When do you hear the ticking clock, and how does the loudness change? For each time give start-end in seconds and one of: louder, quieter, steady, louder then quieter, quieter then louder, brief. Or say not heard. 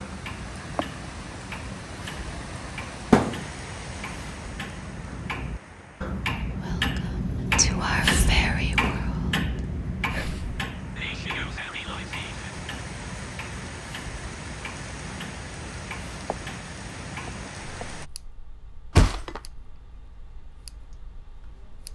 0.0-21.8 louder then quieter.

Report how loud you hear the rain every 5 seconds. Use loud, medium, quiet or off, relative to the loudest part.
loud, medium, loud, loud, off.